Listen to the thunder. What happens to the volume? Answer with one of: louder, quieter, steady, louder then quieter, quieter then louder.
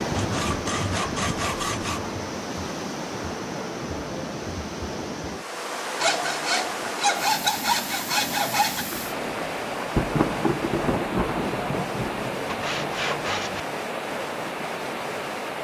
louder then quieter.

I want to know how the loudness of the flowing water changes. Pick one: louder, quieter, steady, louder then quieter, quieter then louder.
steady.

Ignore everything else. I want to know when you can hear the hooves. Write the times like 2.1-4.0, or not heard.
not heard.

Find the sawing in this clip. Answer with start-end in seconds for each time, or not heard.
0.1-2.0, 6.0-8.8, 12.4-13.7.